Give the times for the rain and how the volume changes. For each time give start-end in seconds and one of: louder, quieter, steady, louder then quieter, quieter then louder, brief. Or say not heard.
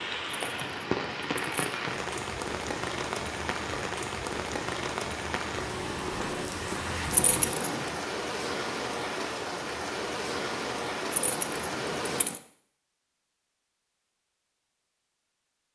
0.0-12.2 steady.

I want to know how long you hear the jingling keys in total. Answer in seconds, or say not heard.
4 s.